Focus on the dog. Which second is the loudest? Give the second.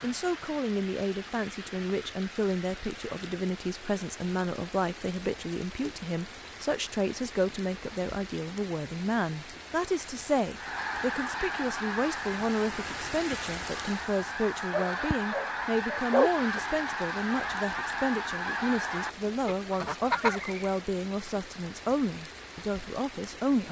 16 s.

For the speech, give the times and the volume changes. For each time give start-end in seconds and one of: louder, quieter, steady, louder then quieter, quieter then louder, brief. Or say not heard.
0.0-23.6 steady.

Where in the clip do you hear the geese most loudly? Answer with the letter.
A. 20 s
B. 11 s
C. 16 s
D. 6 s
A.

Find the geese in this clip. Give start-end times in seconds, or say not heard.
10.5-20.8.